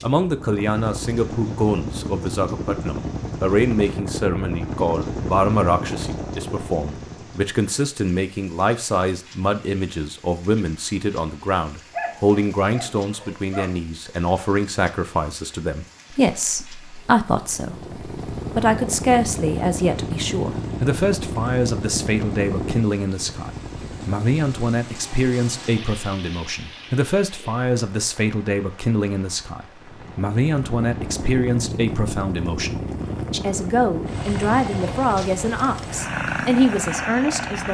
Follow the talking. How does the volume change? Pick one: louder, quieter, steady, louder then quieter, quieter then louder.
steady.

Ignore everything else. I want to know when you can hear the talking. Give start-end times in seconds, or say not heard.
0.0-37.6.